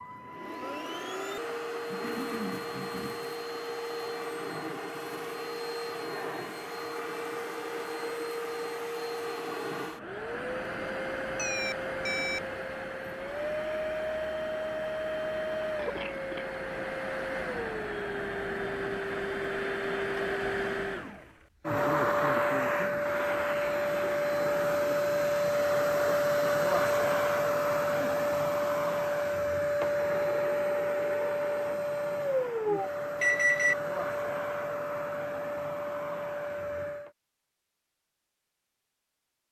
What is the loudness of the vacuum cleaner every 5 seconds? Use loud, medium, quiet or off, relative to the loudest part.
medium, medium, medium, medium, loud, loud, loud, medium.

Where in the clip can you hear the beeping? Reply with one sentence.
The beeping can be heard from 11.2 to 13.2 s and from 33.2 to 33.8 s.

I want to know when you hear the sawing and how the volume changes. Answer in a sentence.
You can't hear the sawing here.